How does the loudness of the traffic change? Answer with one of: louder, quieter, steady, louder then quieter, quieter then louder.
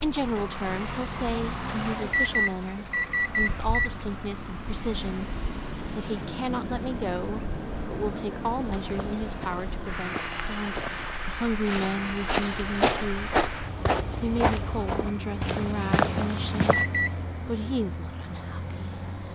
steady.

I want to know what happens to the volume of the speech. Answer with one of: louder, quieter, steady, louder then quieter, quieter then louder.
steady.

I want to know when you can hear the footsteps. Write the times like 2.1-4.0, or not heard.
8.8-16.9.